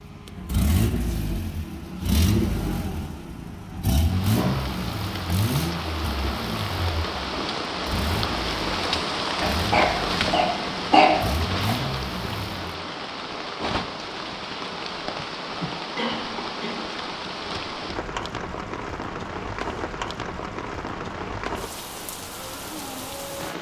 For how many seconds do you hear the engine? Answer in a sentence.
The engine can be heard for 13 seconds in total.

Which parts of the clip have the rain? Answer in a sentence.
You can hear the rain from 4.0 to 23.5 s.